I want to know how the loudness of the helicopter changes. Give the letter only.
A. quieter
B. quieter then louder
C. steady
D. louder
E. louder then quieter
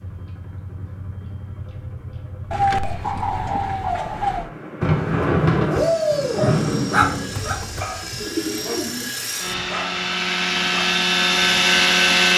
D.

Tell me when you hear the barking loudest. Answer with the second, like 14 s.
7 s.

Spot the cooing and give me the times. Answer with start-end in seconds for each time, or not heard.
2.5-4.5, 7.2-9.1.